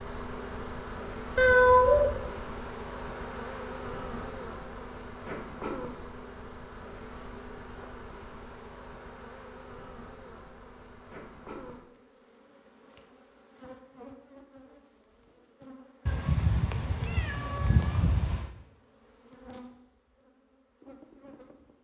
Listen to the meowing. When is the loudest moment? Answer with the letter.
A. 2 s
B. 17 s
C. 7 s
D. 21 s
A.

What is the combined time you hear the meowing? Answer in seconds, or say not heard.
3 s.